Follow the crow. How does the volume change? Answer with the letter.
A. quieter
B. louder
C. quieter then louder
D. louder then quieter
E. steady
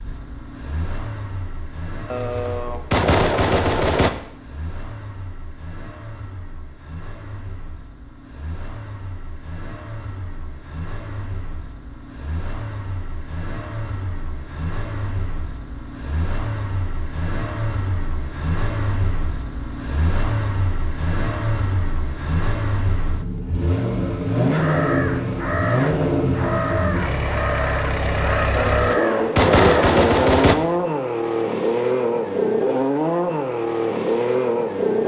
E.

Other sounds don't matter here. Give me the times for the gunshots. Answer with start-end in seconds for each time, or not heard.
2.1-4.1, 28.6-30.6.